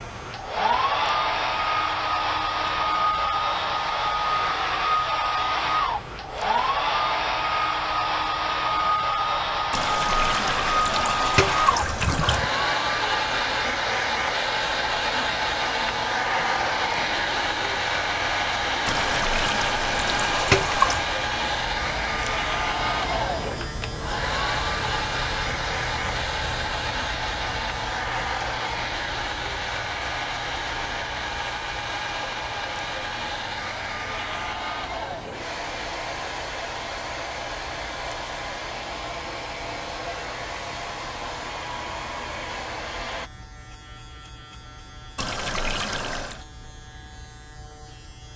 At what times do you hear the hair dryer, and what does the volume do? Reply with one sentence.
The hair dryer can be heard from 0.0 to 43.3 s, getting quieter.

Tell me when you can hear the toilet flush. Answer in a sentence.
The toilet flush can be heard from 9.7 to 12.4 s, from 18.9 to 21.1 s and from 45.1 to 46.4 s.